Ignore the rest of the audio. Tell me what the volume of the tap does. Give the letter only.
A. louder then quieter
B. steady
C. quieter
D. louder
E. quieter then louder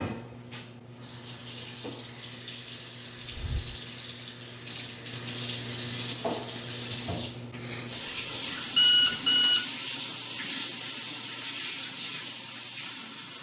D.